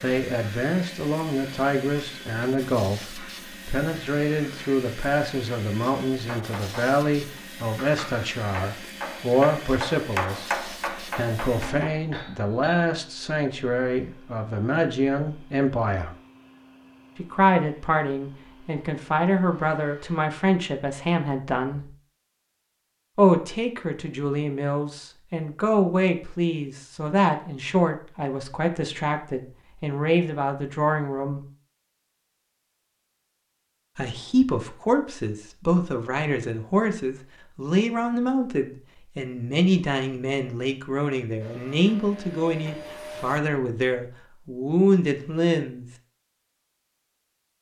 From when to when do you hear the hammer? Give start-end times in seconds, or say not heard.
6.2-12.8.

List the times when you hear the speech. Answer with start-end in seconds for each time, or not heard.
0.0-16.1, 17.1-21.9, 23.1-31.4, 34.0-45.9.